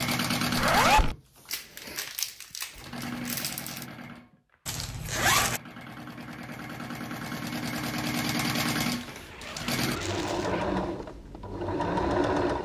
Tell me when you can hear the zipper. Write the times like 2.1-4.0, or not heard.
0.6-1.1, 4.7-5.6, 8.9-10.9.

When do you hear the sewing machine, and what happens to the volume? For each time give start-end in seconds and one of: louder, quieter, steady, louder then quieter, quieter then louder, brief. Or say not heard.
0.0-12.5 quieter then louder.